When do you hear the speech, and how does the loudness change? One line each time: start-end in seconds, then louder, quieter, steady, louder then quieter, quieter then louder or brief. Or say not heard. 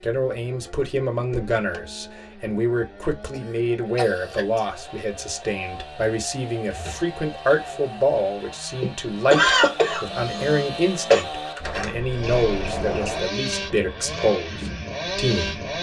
0.0-15.6 steady.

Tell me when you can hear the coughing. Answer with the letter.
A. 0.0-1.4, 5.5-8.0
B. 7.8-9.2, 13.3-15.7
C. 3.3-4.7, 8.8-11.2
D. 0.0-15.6
C.